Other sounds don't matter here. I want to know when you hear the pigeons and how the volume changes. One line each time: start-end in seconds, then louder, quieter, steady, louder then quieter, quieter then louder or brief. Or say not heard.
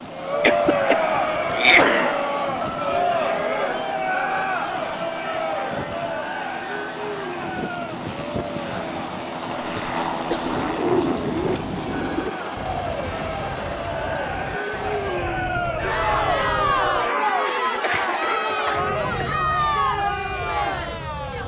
10.4-16.8 quieter.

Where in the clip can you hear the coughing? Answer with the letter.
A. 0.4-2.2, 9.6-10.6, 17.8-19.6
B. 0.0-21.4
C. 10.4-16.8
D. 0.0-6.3
A.